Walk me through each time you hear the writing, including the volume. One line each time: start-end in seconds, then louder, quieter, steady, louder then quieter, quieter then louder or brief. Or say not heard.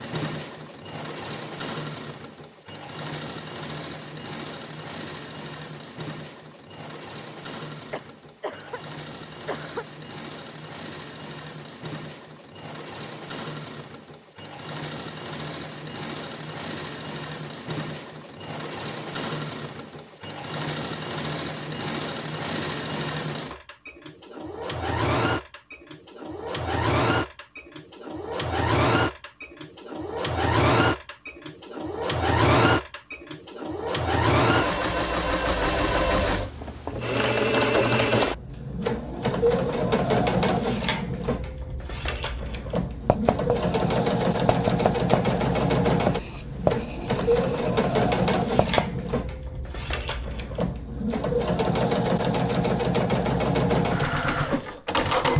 43.0-49.0 louder then quieter.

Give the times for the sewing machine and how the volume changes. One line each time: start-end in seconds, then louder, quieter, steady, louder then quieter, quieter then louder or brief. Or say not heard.
0.0-55.3 louder.